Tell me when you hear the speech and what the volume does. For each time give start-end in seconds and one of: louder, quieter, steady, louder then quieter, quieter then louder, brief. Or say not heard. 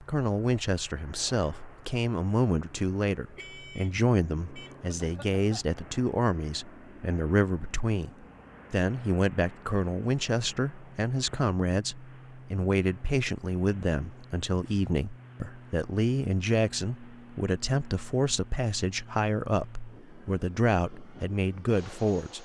0.0-22.4 steady.